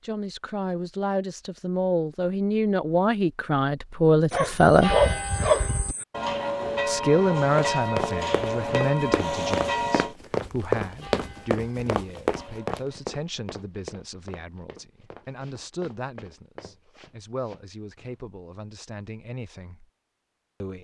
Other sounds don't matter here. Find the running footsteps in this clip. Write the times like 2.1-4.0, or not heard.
7.5-18.2.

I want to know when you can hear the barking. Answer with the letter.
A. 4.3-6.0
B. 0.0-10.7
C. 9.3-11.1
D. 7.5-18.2
A.